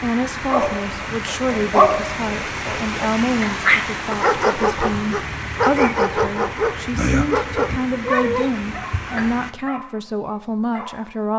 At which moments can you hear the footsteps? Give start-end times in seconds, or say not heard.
not heard.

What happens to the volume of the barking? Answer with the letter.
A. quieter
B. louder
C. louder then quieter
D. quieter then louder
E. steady
A.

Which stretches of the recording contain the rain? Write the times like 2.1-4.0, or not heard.
0.0-9.6.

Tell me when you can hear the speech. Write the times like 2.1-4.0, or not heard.
0.0-11.3.